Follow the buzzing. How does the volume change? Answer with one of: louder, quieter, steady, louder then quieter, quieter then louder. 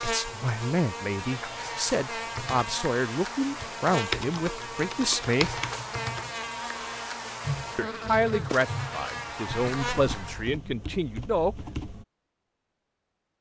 steady.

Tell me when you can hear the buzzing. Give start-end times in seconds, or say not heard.
0.0-10.6.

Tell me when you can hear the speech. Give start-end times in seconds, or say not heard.
0.0-5.6, 7.8-11.6.